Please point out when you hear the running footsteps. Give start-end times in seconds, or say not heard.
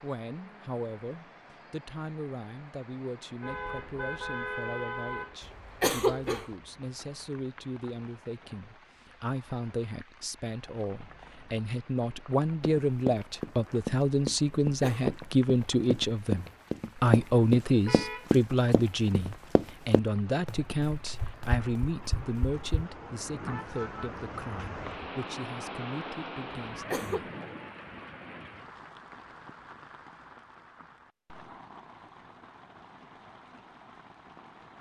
12.6-22.9.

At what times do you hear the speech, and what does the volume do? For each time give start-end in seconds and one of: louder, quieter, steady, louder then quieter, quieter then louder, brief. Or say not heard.
0.0-27.3 louder then quieter.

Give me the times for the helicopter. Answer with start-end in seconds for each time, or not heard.
not heard.